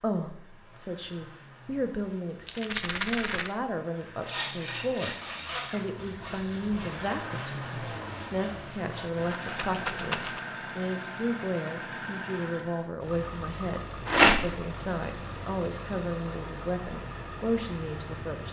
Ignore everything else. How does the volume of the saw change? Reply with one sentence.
The volume of the saw goes down.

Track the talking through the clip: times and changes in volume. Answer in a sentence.
You can hear the talking from 0.0 to 18.4 s, at a steady volume.